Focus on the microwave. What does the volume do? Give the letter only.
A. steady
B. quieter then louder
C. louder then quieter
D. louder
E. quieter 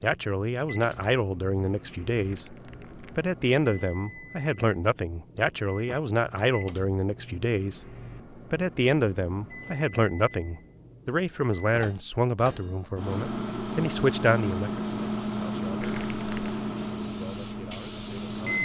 D.